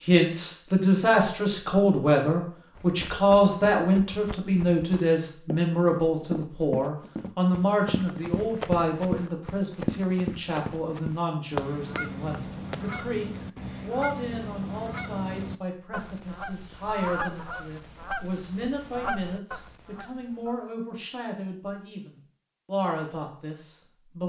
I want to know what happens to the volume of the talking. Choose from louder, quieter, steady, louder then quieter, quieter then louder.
quieter.